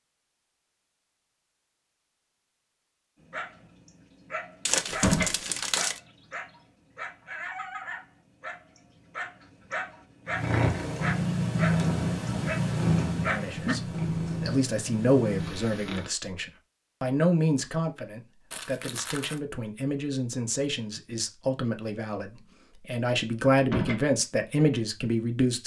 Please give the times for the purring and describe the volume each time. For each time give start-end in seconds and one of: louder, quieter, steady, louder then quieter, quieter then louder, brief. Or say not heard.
10.2-16.1 quieter.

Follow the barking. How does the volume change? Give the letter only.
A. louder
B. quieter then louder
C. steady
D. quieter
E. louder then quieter
A.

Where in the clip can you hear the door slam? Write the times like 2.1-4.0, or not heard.
4.8-5.3, 23.6-24.1.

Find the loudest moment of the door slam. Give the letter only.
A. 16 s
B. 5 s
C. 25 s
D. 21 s
B.